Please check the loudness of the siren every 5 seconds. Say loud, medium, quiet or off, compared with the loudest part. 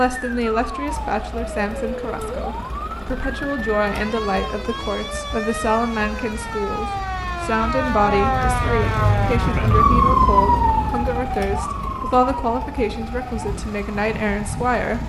medium, loud, loud.